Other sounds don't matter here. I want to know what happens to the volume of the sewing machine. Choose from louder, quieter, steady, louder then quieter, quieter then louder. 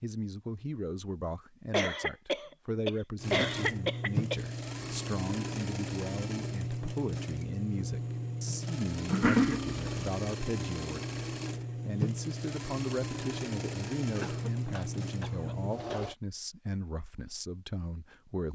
steady.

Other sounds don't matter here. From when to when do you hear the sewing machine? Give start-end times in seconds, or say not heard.
3.1-16.1.